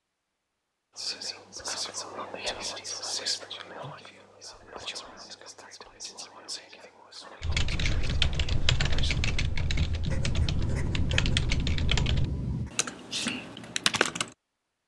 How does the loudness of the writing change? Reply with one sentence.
The volume of the writing goes up.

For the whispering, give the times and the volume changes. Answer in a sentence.
You can hear the whispering from 0.9 to 9.2 s, getting quieter.